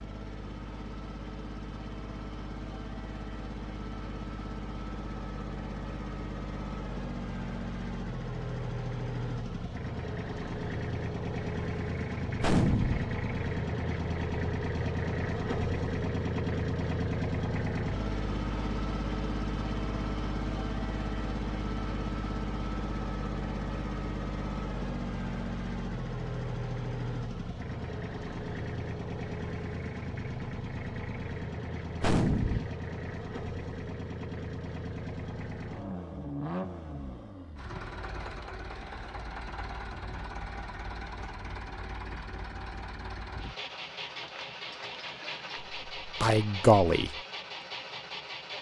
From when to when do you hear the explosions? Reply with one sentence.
The explosions can be heard from 12.4 to 13.1 s and from 32.0 to 32.7 s.